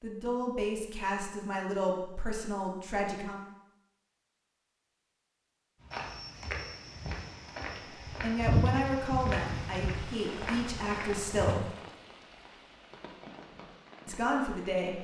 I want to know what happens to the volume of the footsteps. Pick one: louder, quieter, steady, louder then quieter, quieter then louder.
louder then quieter.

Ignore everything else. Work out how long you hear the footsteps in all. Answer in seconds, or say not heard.
6 s.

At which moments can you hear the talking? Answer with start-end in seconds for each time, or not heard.
0.0-3.4, 8.2-11.7, 14.1-14.9.